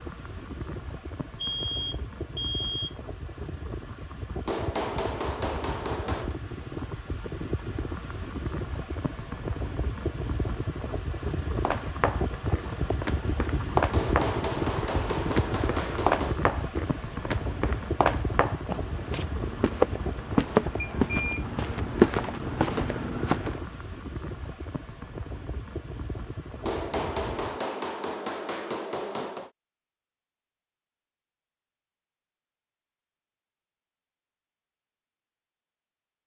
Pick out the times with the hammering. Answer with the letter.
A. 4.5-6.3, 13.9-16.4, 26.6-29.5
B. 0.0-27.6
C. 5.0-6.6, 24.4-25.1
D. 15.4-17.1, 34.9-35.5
A.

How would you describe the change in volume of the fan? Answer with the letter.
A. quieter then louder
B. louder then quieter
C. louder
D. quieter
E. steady
B.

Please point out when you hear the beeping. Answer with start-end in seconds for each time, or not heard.
1.4-3.0, 20.8-21.4.